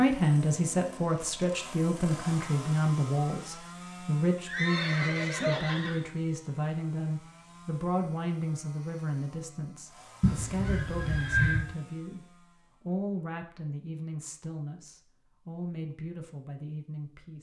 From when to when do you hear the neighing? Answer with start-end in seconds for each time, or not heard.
4.5-6.0, 10.2-11.6.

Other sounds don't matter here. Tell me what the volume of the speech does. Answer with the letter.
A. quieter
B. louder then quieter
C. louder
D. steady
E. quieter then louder
A.